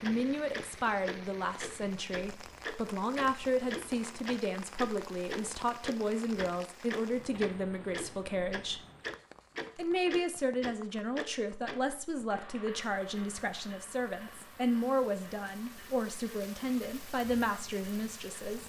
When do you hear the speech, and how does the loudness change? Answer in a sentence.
You can hear the speech from 0.0 to 8.8 s, at a steady volume; and from 9.8 to 18.6 s, at a steady volume.